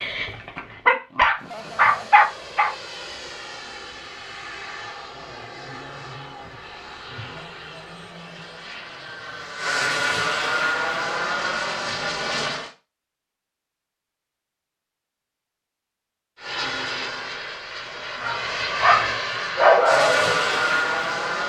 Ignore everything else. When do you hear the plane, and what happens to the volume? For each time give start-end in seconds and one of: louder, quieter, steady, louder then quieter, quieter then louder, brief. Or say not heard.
1.4-12.7 louder
16.4-21.4 louder.